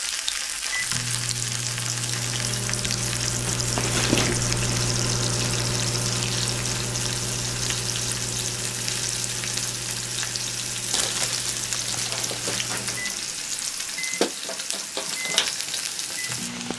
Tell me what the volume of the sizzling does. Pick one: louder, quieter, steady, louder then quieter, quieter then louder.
steady.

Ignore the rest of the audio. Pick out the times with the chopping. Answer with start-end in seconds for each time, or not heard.
not heard.